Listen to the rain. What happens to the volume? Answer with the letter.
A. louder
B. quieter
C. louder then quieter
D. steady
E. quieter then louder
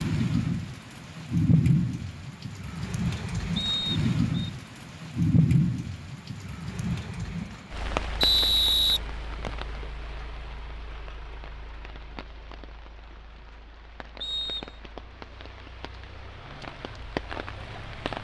E.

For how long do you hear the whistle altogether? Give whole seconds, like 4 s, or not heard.
3 s.